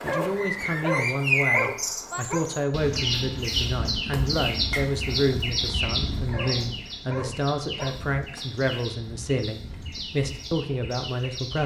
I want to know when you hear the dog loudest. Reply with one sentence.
The volume of the dog peaks at 1 second.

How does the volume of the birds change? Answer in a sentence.
The volume of the birds goes down.